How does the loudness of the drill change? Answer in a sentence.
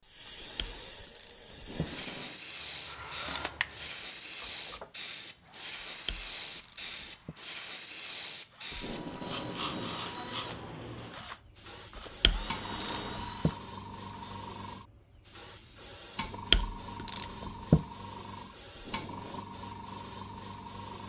The volume of the drill goes down, then up.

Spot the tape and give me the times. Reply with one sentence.
The tape can be heard from 1.6 to 2.4 s, from 8.7 to 10.1 s and from 18.7 to 19.4 s.